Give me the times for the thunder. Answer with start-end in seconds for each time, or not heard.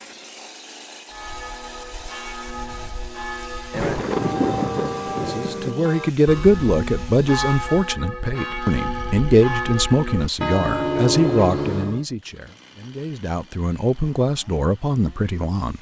3.7-5.8.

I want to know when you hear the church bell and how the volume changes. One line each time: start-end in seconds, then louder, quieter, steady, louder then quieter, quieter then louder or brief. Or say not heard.
1.1-12.1 louder.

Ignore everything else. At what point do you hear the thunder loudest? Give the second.
4 s.